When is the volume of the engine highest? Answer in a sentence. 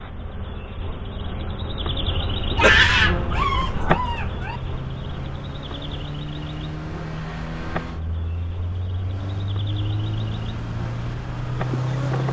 The loudest moment of the engine is at 12 seconds.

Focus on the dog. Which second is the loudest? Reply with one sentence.
The volume of the dog peaks at 3 seconds.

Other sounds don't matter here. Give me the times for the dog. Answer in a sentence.
You can hear the dog from 2.5 to 4.6 s.